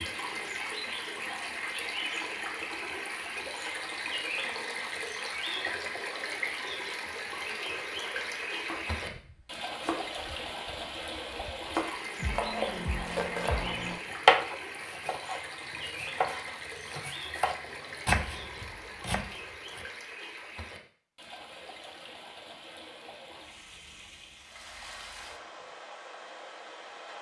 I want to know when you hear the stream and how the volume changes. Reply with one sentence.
You can hear the stream from 0.0 to 27.1 s, getting quieter.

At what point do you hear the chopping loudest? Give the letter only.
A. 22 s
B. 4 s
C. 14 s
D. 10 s
C.